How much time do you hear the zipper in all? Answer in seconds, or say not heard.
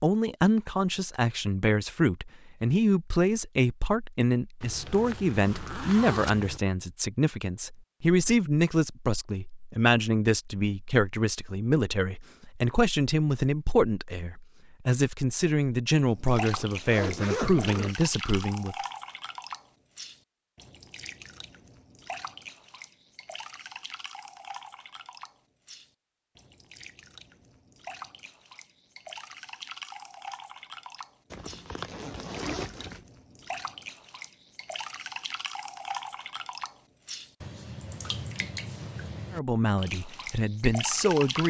5 s.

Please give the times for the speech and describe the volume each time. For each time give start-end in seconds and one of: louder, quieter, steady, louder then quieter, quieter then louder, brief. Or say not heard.
0.0-18.8 steady
39.3-41.4 brief.